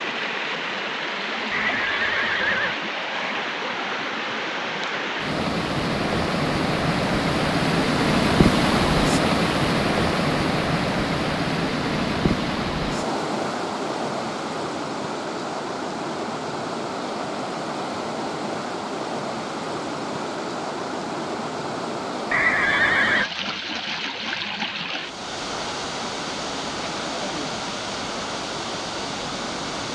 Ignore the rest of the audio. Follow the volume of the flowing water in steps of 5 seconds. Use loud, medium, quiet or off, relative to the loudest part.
medium, loud, loud, medium, medium, medium.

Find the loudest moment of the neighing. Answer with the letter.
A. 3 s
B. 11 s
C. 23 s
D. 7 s
C.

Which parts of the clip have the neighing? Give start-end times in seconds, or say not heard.
1.5-2.8, 22.3-23.3.